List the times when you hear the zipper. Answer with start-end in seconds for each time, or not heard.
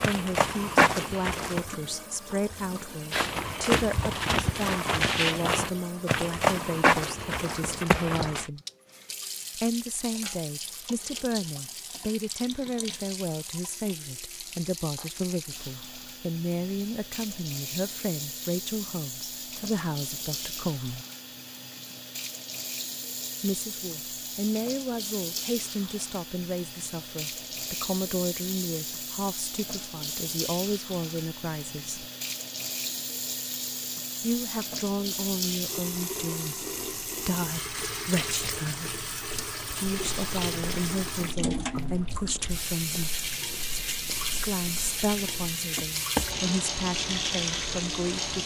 not heard.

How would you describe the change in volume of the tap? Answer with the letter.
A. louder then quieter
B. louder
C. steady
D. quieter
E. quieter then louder
B.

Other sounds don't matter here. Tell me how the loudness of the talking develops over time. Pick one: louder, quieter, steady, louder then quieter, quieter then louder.
steady.